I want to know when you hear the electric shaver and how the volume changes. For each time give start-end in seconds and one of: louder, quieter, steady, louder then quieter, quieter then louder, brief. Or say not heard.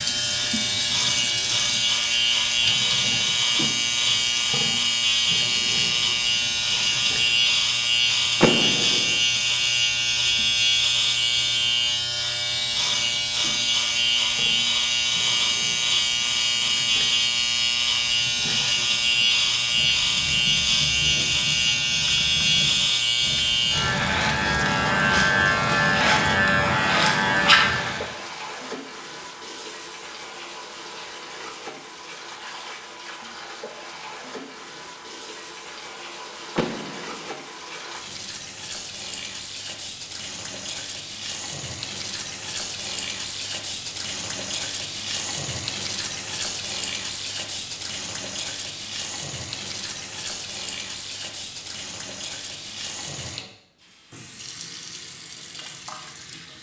0.0-28.1 steady.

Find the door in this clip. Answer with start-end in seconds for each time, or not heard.
8.4-9.2, 36.5-37.4.